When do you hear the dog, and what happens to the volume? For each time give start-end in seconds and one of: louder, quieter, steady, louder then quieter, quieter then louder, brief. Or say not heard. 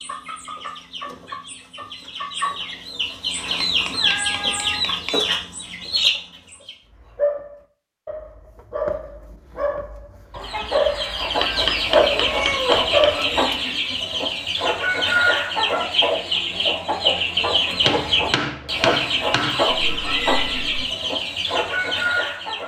7.0-13.6 louder.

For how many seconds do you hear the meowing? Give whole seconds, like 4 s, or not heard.
3 s.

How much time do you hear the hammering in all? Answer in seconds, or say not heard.
6 s.